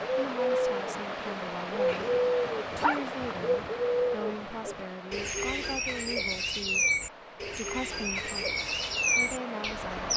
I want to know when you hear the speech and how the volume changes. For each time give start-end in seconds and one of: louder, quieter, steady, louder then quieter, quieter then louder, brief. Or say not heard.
0.1-2.0 brief
2.8-8.5 steady
9.2-10.1 brief.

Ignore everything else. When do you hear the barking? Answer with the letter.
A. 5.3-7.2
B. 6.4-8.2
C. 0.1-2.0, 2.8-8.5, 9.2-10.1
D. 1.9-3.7
D.